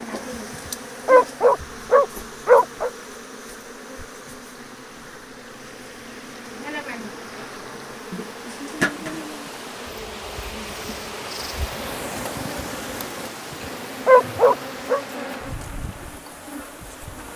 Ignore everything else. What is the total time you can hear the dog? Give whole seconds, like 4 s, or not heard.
3 s.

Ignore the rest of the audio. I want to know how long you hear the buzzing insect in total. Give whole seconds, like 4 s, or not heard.
17 s.